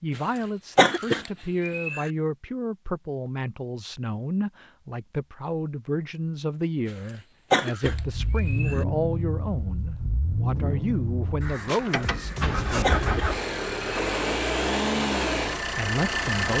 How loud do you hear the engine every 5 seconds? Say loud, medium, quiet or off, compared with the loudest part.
off, medium, loud, loud.